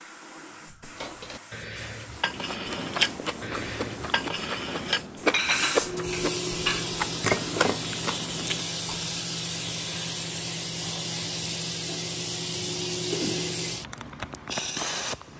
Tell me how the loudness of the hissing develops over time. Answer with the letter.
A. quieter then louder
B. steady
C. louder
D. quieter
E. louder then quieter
C.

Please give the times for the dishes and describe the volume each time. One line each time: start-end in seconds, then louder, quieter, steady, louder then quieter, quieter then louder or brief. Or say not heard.
0.9-7.8 louder.